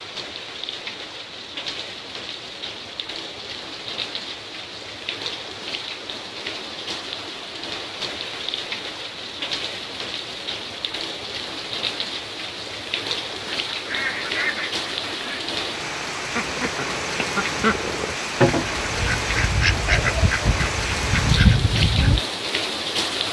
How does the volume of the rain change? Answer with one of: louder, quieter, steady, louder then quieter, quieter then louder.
louder.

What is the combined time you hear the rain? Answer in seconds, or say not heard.
23 s.